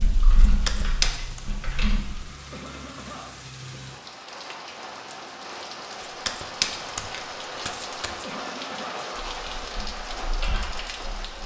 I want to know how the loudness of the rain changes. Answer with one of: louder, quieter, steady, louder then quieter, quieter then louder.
louder.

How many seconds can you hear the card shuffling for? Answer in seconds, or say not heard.
3 s.